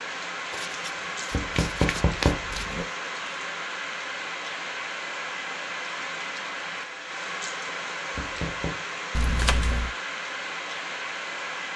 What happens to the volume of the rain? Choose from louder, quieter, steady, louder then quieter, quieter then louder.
steady.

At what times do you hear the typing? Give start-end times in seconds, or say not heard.
not heard.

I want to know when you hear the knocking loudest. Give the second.
2 s.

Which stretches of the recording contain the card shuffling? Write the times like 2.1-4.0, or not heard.
0.5-2.8, 9.1-9.9.